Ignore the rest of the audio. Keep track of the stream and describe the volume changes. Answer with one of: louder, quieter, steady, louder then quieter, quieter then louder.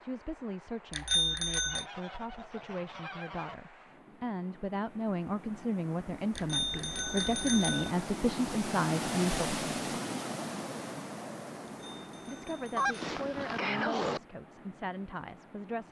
louder then quieter.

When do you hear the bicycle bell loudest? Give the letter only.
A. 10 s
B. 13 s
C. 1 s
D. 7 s
C.